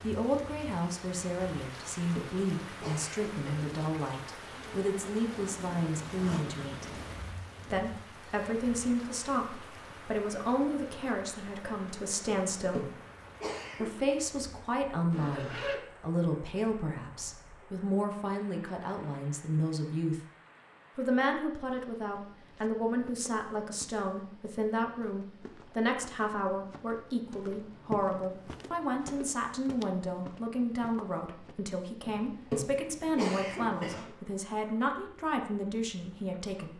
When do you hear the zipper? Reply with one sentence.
The zipper can be heard from 5.3 to 7.2 s, from 15.1 to 15.8 s and from 33.0 to 34.1 s.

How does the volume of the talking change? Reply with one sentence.
The loudness of the talking stays about the same.